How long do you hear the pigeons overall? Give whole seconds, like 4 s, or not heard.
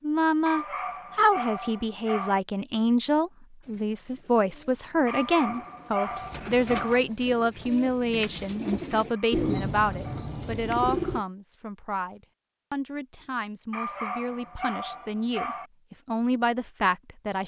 8 s.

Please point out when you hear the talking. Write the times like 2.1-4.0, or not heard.
0.0-17.4.